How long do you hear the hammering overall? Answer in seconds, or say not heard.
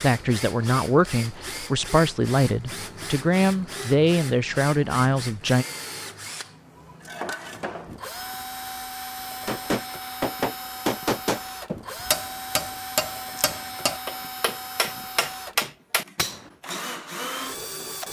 7 s.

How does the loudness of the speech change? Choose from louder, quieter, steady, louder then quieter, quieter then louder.
steady.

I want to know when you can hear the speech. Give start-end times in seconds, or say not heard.
0.0-5.7.